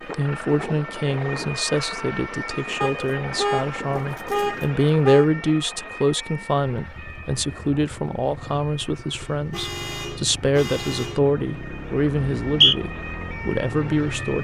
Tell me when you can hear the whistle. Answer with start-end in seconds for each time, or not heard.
12.2-12.8.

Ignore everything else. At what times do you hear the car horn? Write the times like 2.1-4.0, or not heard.
2.8-5.2, 9.2-11.2.